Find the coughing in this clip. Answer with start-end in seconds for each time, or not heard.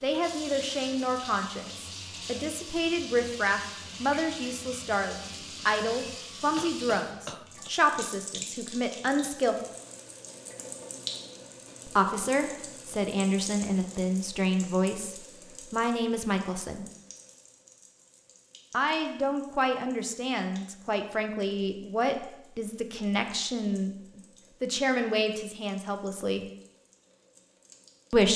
6.5-7.7.